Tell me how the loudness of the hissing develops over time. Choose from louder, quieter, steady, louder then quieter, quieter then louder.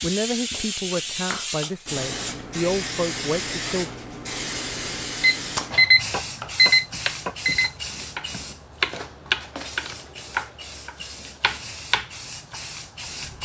quieter.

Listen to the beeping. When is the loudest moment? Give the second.
6 s.